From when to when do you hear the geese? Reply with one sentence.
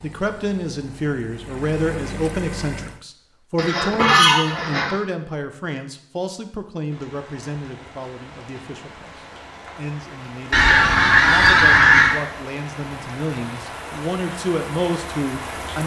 You can hear the geese from 3.5 to 5.0 s and from 10.5 to 12.2 s.